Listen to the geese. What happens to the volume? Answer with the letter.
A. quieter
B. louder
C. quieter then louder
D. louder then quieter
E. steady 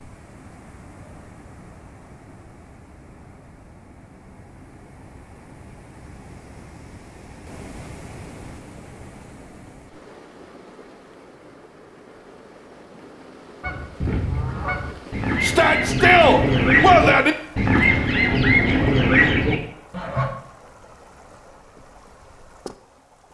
B.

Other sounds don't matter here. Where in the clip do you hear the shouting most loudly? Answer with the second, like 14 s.
17 s.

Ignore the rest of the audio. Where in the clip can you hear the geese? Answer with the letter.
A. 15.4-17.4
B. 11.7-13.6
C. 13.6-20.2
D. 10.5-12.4
C.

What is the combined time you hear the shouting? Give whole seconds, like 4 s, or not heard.
2 s.